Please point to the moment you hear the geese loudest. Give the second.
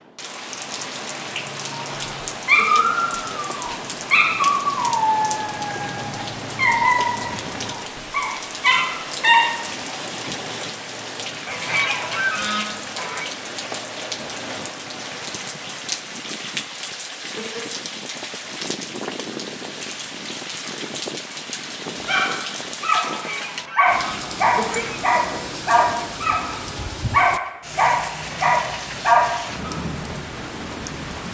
12 s.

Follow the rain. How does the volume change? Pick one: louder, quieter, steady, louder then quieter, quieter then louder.
steady.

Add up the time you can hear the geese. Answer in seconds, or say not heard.
4 s.